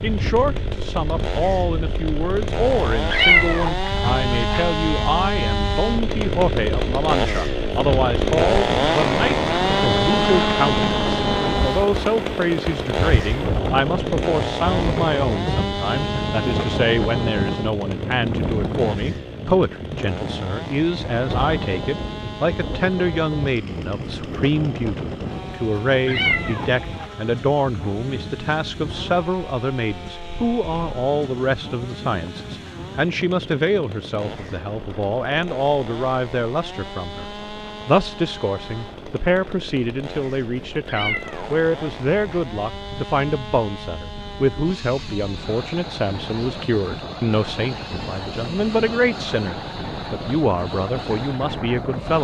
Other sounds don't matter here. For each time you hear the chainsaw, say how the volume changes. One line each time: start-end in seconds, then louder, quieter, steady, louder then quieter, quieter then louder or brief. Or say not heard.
0.0-52.2 quieter.